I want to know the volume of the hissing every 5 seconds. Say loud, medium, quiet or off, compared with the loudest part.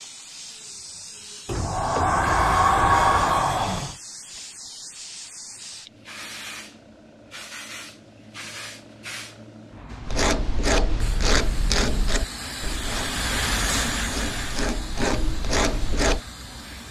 medium, medium, loud, medium.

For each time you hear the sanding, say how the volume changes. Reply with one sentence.
You can hear the sanding from 10.0 to 16.2 s, getting quieter then louder.